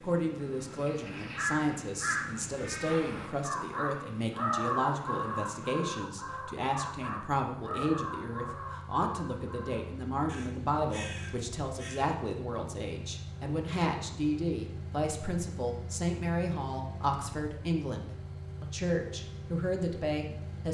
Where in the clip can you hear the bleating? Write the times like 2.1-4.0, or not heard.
not heard.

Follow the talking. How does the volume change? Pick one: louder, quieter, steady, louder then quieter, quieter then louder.
steady.